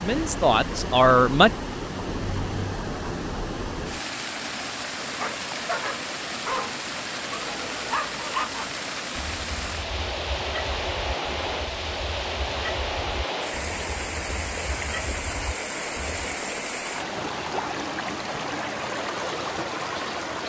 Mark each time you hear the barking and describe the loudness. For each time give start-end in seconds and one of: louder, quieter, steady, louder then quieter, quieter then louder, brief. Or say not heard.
5.2-16.3 quieter.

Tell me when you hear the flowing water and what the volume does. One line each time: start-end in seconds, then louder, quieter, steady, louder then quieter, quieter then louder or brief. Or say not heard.
0.0-20.4 steady.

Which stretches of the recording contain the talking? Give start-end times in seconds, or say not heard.
0.0-1.5.